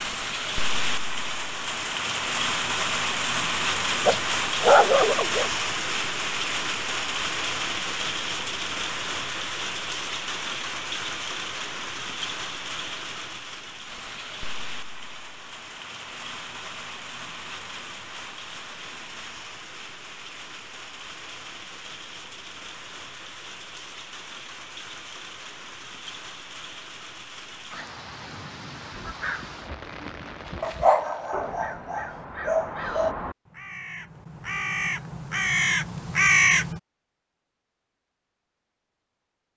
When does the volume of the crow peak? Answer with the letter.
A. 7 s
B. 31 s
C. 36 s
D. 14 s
C.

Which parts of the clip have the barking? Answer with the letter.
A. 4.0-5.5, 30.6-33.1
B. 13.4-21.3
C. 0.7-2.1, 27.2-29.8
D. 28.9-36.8
A.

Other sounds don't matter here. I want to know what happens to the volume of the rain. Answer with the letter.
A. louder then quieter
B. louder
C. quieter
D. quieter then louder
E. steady
C.